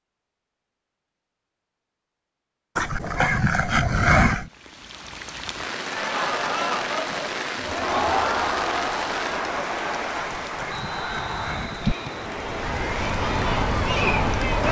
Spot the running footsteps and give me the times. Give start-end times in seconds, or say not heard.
not heard.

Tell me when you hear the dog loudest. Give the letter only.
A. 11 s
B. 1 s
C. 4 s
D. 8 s
C.